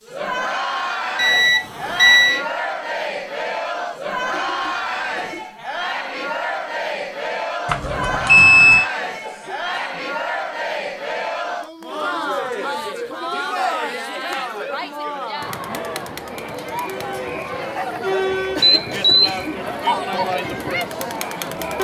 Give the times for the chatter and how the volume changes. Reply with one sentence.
You can hear the chatter from 0.1 to 21.7 s, at a steady volume.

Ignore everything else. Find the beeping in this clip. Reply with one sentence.
The beeping can be heard from 1.1 to 2.4 s, from 7.7 to 8.8 s and from 18.6 to 19.4 s.